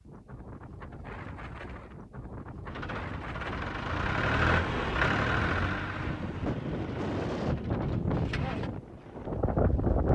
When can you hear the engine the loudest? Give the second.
5 s.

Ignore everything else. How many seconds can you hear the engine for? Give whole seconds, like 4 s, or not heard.
6 s.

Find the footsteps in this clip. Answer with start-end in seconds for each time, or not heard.
not heard.